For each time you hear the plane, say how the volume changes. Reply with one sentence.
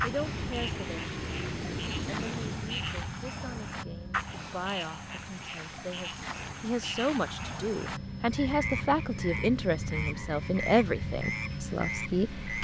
The plane can be heard from 0.0 to 12.5 s, getting quieter then louder.